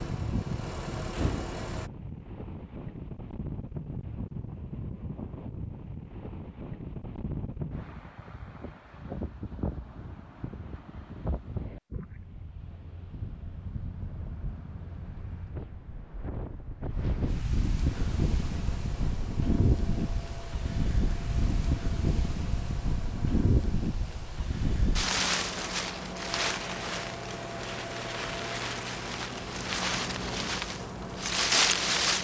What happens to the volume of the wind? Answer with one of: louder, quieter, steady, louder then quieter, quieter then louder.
louder.